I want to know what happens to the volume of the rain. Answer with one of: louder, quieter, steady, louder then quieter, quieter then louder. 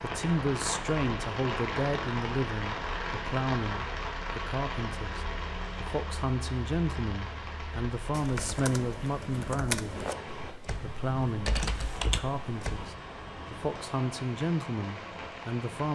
quieter.